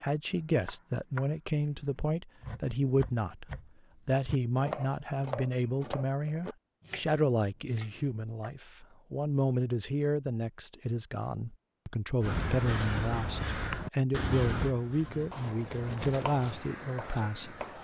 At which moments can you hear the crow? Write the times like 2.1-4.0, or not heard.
12.2-17.8.